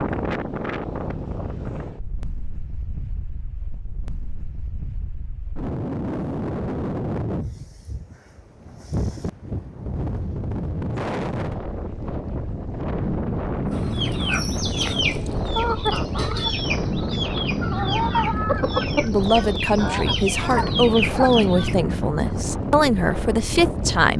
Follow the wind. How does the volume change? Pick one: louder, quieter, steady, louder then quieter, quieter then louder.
louder.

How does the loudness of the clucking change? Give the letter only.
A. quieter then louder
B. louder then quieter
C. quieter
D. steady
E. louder
D.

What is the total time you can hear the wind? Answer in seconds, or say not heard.
24 s.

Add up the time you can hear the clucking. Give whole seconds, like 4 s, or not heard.
8 s.